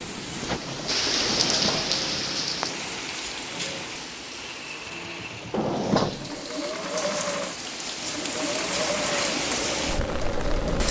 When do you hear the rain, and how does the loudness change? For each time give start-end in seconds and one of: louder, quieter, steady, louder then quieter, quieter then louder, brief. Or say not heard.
0.0-10.8 quieter then louder.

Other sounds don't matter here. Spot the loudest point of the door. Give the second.
6 s.